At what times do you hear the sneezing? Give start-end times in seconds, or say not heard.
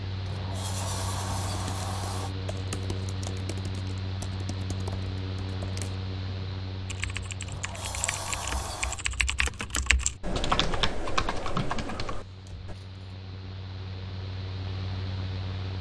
not heard.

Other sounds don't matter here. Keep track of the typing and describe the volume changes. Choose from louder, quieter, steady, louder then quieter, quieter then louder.
louder.